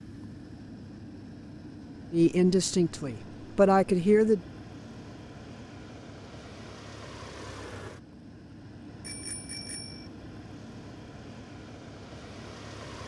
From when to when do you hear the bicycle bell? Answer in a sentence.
You can hear the bicycle bell from 9.0 to 10.1 s.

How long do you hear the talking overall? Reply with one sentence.
You can hear the talking for 2 seconds altogether.